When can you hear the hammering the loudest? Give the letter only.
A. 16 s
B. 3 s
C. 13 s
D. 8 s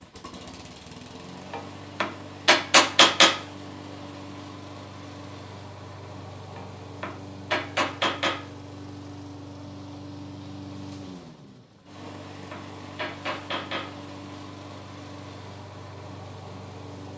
B.